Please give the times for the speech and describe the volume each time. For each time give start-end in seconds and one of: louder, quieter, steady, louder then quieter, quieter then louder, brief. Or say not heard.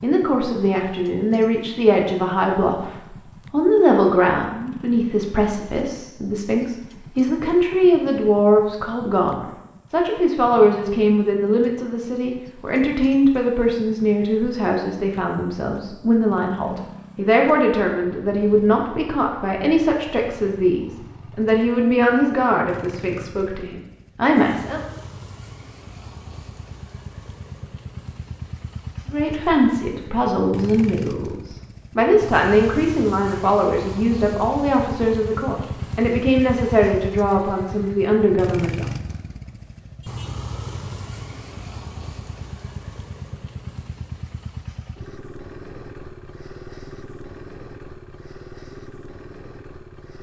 0.0-2.9 brief
3.5-24.8 steady
29.1-38.9 steady.